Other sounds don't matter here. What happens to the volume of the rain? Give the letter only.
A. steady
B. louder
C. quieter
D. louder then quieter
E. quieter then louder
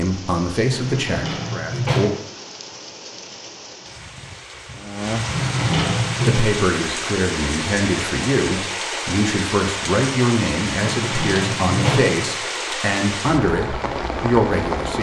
B.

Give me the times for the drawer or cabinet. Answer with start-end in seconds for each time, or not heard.
0.7-2.2, 5.2-6.4, 10.9-12.2.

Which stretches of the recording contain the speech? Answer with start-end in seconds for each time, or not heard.
0.0-2.1, 6.2-14.9.